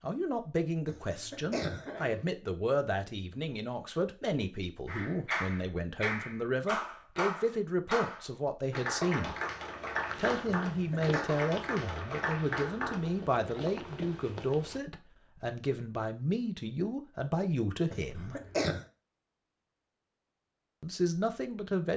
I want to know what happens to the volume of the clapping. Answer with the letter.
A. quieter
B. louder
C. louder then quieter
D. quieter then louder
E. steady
E.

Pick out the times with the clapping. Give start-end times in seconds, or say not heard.
4.8-12.9.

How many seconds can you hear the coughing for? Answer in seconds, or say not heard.
3 s.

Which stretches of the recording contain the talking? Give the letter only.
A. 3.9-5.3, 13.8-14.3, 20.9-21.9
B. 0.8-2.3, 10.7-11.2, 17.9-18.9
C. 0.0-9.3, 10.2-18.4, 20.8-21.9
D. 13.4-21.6
C.